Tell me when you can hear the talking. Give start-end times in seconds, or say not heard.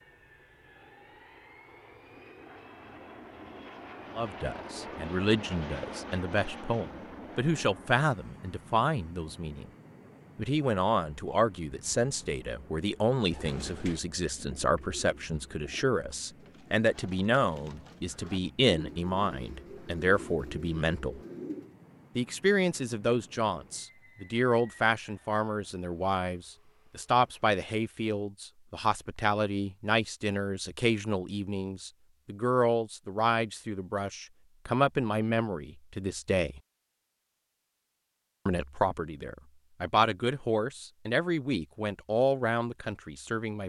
4.2-9.7, 10.3-21.2, 22.1-36.6, 38.5-43.6.